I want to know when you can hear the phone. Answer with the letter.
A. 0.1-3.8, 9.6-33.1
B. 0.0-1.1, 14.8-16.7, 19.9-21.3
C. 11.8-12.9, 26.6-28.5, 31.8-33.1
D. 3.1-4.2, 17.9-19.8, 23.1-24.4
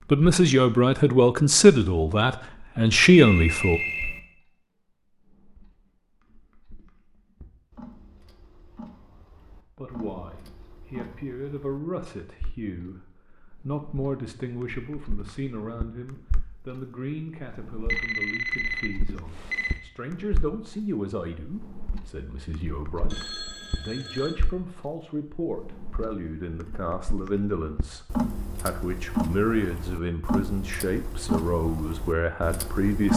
D.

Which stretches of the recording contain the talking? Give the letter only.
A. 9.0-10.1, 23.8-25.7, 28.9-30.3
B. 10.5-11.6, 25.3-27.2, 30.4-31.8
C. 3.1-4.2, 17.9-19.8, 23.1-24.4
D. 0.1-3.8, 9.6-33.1
D.